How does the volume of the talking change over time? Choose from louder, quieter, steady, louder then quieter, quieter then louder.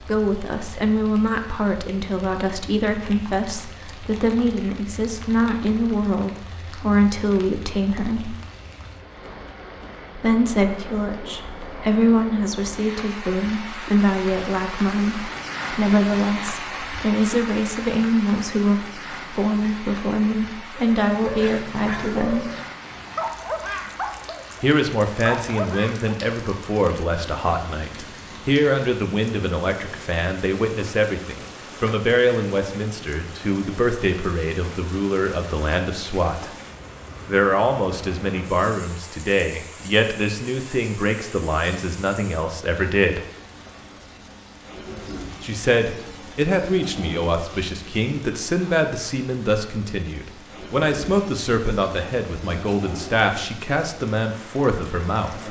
steady.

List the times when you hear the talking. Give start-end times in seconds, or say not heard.
0.1-8.3, 10.2-22.5, 24.6-36.5, 37.2-43.2, 45.4-55.4.